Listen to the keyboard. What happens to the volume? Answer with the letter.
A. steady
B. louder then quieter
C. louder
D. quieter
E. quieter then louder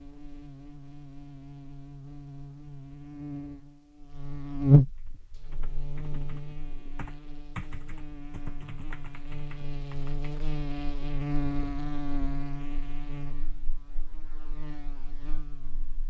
B.